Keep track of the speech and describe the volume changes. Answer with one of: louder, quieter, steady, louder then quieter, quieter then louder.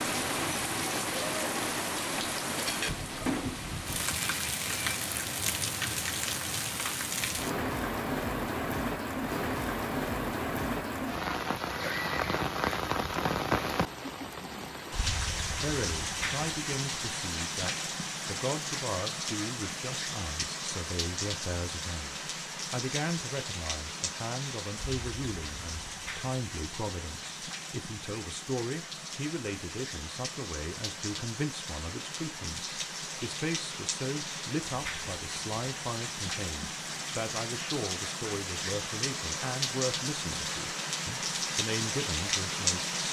steady.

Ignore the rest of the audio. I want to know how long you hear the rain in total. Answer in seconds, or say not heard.
43 s.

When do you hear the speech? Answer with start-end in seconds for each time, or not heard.
15.6-43.0.